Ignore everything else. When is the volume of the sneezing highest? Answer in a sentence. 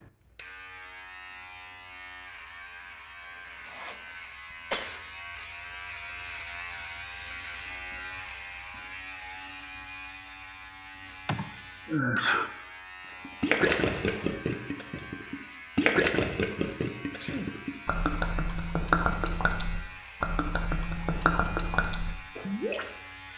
The loudest moment of the sneezing is at 12 seconds.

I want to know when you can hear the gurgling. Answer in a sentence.
You can hear the gurgling from 13.2 to 22.9 s.